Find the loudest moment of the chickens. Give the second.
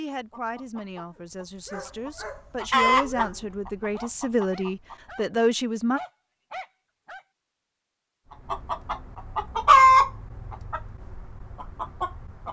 10 s.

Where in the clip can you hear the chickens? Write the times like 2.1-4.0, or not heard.
0.1-5.2, 8.5-12.4.